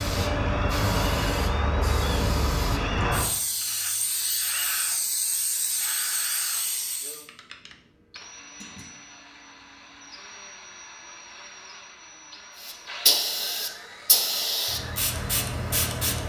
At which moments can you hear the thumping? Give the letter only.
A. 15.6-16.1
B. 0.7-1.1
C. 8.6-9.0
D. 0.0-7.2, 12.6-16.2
C.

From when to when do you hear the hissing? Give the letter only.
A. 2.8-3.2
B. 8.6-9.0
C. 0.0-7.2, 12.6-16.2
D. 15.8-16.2
C.